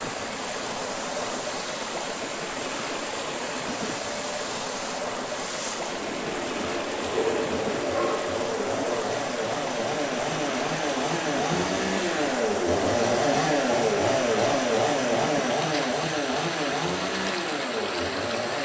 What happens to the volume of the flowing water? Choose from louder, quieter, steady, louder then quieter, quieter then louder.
steady.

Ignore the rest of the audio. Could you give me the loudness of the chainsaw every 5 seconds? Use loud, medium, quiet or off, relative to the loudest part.
quiet, medium, loud, loud.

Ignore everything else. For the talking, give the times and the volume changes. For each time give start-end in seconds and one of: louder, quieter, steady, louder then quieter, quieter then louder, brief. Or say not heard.
not heard.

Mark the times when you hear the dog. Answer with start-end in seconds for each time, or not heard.
7.1-9.2.